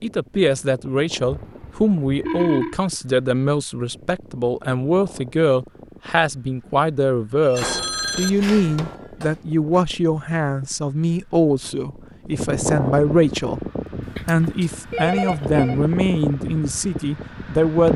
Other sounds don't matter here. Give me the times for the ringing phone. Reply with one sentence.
The ringing phone can be heard from 1.2 to 2.8 s, from 7.5 to 8.9 s and from 14.0 to 15.8 s.